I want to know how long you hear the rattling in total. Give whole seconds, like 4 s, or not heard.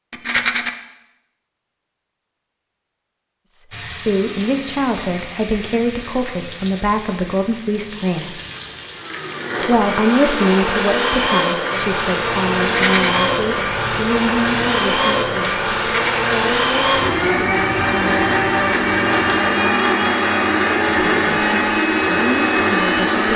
2 s.